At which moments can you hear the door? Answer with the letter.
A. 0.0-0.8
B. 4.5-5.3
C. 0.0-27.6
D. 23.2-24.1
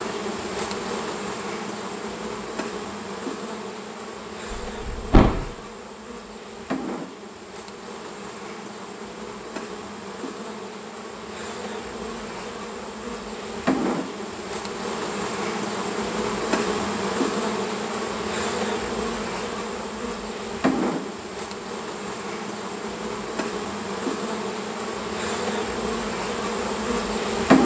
B.